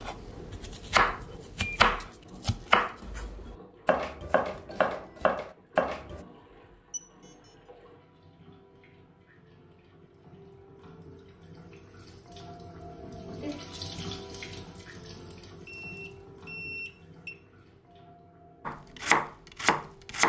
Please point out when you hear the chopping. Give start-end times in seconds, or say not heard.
0.0-6.2, 18.6-20.2.